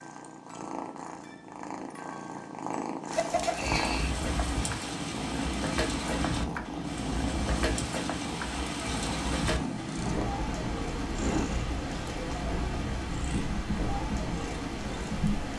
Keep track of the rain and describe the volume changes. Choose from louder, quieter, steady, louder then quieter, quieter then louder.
steady.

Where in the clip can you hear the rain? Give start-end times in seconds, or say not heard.
3.0-15.5.